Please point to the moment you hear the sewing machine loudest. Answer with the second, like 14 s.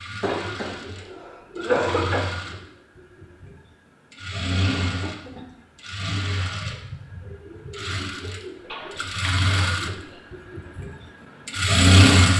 12 s.